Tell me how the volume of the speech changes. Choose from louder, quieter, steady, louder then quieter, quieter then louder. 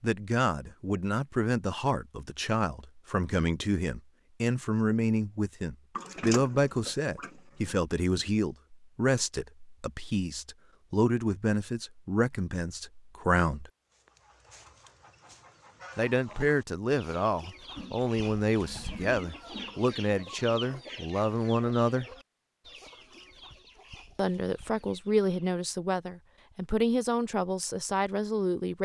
steady.